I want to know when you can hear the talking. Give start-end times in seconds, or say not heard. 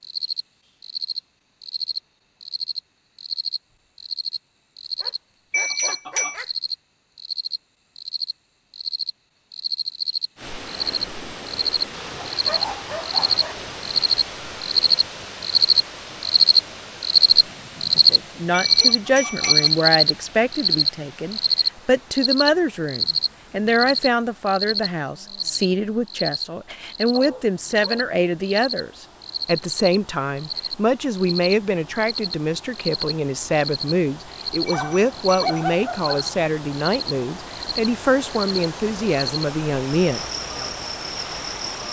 18.1-40.7.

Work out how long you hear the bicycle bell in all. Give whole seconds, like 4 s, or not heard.
3 s.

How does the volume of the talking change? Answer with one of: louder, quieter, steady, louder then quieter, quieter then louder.
steady.